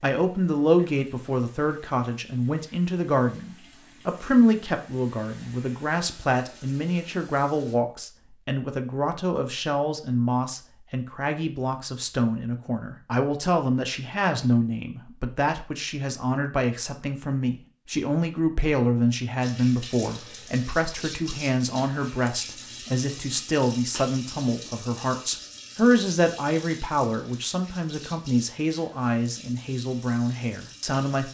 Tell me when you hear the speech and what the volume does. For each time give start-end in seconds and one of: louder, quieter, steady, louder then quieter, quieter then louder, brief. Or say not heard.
0.0-31.2 steady.